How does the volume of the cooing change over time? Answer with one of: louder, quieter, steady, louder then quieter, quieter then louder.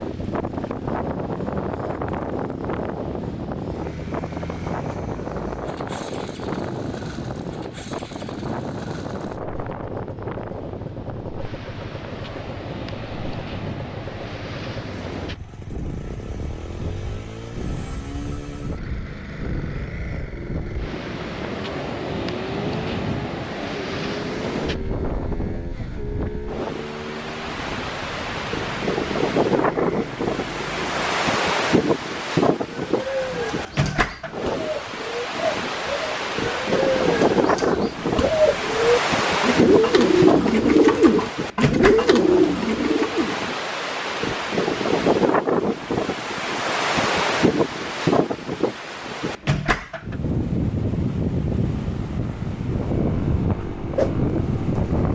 louder.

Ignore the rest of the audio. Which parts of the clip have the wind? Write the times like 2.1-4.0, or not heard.
0.0-55.0.